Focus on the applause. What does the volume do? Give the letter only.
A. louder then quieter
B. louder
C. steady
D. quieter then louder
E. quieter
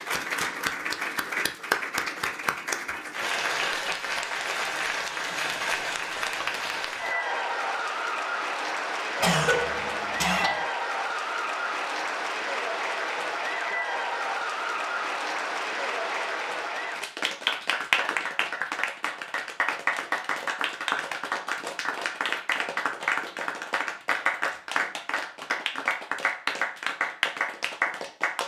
C.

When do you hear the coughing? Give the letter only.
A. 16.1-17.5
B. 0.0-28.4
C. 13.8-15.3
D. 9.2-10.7
D.